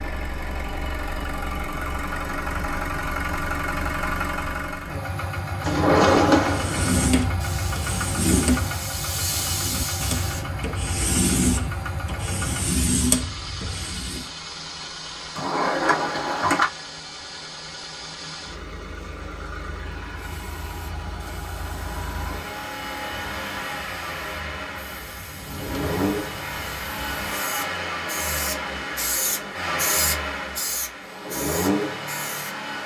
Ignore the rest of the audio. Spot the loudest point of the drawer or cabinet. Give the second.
6 s.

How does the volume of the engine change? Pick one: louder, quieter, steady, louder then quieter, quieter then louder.
quieter then louder.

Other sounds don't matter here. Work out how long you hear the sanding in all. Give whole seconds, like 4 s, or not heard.
8 s.